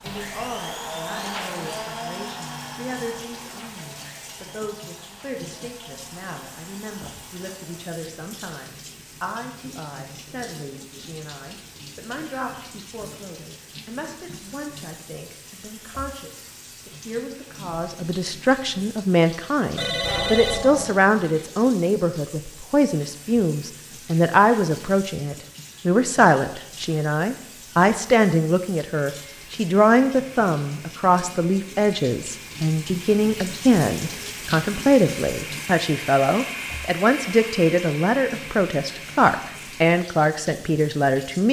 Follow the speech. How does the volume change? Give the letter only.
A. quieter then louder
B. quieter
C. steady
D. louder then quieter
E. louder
E.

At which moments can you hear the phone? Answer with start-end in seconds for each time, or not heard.
19.8-21.0.